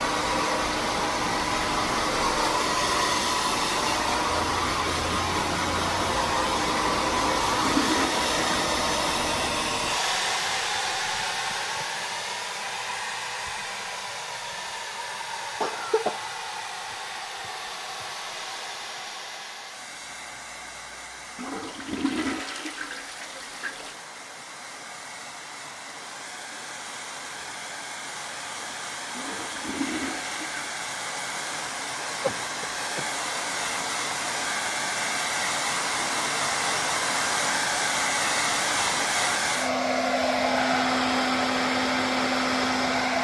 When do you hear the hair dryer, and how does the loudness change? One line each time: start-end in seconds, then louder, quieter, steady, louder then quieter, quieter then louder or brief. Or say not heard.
0.0-43.2 quieter then louder.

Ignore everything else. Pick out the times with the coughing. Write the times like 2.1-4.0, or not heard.
15.6-16.2, 32.2-33.0.